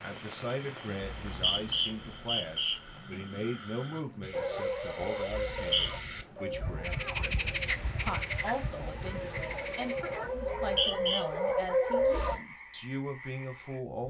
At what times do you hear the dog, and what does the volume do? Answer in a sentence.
You can hear the dog from 4.3 to 12.3 s, getting quieter then louder.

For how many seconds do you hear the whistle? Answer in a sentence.
You can hear the whistle for 3 seconds altogether.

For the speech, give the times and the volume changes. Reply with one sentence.
You can hear the speech from 0.0 to 14.0 s, at a steady volume.